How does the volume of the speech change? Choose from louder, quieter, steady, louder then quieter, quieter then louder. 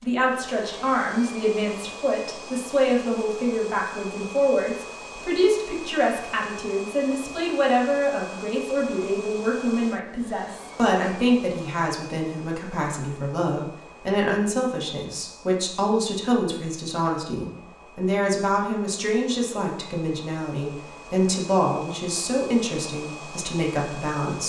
steady.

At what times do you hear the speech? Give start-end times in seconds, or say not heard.
0.0-24.4.